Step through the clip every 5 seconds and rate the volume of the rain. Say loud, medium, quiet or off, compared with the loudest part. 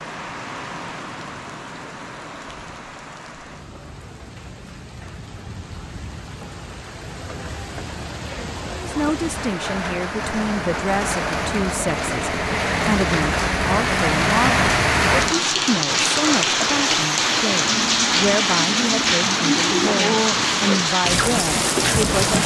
quiet, quiet, loud, loud, loud.